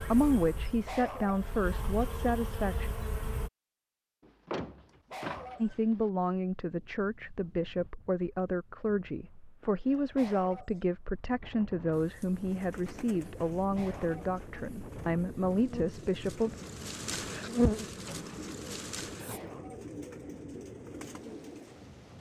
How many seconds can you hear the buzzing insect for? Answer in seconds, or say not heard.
11 s.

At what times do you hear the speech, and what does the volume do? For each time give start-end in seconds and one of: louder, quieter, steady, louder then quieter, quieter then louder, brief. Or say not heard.
0.0-2.9 brief
5.6-16.6 steady.